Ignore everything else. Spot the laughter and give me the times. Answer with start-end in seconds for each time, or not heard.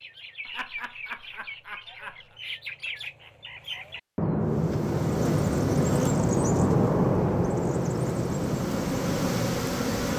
0.5-2.4.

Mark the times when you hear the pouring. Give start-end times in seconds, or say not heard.
not heard.